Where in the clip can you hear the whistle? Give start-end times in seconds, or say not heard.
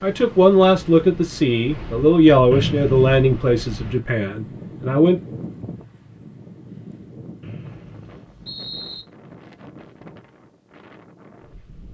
2.5-3.2, 7.4-9.1.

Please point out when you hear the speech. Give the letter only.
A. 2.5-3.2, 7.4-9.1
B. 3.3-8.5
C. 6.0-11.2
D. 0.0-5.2
D.